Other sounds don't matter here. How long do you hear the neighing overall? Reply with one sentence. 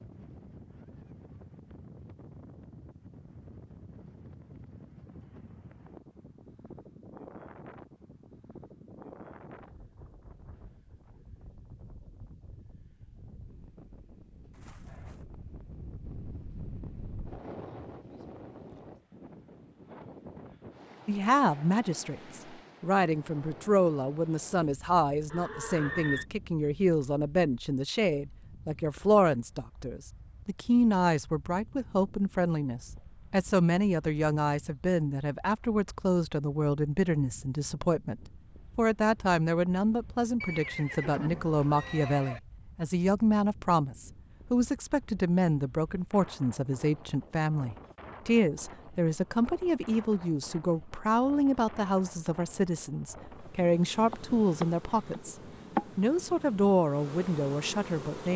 You can hear the neighing for 4 seconds altogether.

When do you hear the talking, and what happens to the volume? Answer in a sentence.
You can hear the talking from 21.1 to 55.4 s, at a steady volume; and briefly from 56.0 to 58.3 s.